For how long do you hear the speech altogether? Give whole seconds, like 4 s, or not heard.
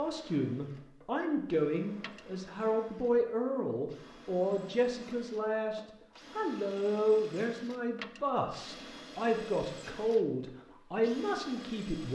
12 s.